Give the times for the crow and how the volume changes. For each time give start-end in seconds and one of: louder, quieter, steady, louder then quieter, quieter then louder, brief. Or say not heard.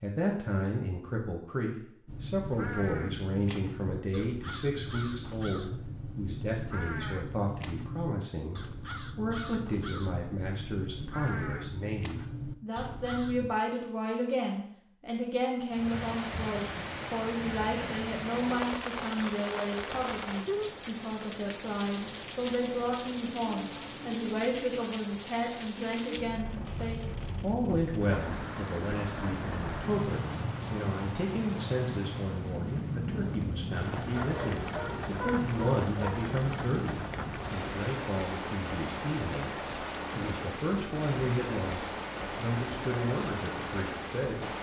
2.0-13.5 steady.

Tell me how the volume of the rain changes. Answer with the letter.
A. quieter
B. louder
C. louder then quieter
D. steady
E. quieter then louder
D.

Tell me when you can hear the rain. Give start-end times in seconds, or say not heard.
15.7-44.5.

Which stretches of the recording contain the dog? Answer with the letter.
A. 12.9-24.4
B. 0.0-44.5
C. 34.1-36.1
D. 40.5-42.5
C.